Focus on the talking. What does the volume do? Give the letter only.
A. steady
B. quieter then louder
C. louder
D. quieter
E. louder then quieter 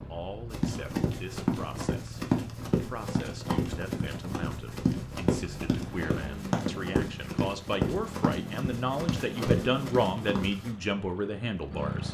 C.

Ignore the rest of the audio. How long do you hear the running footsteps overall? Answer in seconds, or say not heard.
10 s.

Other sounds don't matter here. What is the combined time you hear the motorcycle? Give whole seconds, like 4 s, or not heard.
12 s.